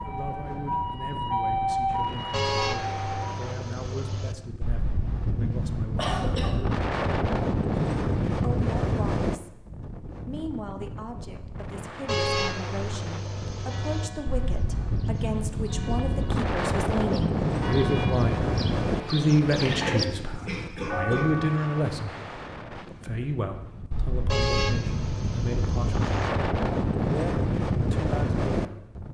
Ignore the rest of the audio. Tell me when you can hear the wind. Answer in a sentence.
The wind can be heard from 0.0 to 29.0 s.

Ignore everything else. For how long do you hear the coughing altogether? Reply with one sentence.
You can hear the coughing for 2 seconds altogether.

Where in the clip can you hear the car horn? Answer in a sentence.
The car horn can be heard from 2.3 to 4.3 s, from 12.1 to 14.1 s and from 24.2 to 26.3 s.